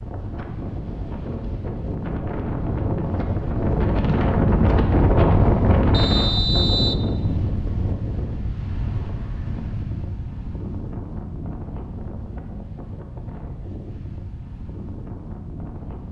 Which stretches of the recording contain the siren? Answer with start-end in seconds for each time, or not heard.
not heard.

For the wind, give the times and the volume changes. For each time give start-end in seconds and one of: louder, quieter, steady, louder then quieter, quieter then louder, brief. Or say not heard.
0.0-16.0 louder then quieter.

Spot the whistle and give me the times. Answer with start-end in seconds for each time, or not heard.
5.9-7.0.